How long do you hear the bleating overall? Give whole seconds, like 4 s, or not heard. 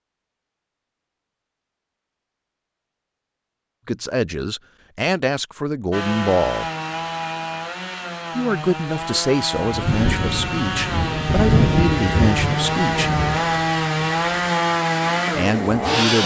not heard.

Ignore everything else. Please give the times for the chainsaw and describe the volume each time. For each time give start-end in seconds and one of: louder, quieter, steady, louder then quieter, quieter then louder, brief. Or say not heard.
5.9-16.2 louder.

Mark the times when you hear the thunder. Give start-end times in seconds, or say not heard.
9.6-14.4.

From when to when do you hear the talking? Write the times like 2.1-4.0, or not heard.
3.9-6.7, 8.3-13.1, 15.3-16.2.